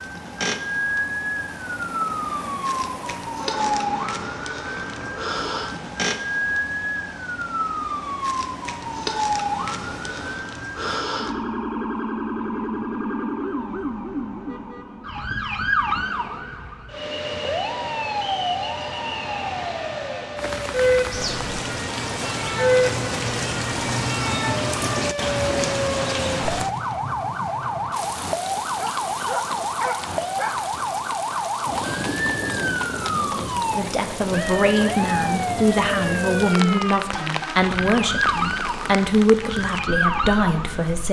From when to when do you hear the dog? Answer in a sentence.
You can hear the dog from 28.8 to 30.7 s.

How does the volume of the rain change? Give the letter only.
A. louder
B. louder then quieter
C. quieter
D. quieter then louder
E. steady
C.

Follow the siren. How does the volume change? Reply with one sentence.
The loudness of the siren stays about the same.